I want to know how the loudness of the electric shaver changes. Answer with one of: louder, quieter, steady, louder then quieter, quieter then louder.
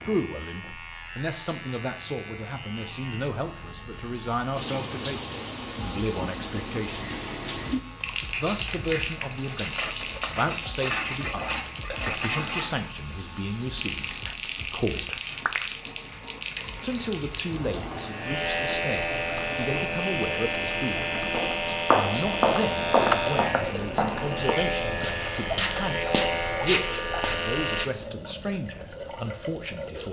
louder.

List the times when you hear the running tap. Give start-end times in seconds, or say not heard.
4.5-30.0.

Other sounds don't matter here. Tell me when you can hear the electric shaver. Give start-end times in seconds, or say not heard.
0.0-27.9.